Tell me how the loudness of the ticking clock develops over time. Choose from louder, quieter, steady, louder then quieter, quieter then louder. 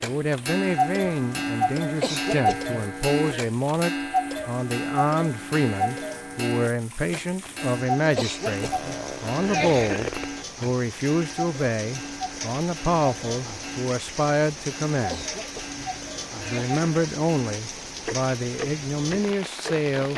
quieter.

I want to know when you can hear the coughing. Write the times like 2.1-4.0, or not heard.
1.9-3.4, 8.1-10.1, 15.1-16.9.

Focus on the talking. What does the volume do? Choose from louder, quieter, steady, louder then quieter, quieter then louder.
steady.